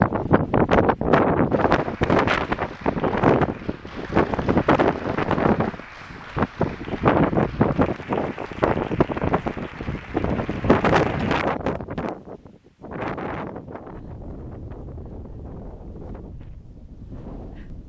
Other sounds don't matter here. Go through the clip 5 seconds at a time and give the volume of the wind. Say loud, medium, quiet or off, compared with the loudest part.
loud, loud, medium, quiet.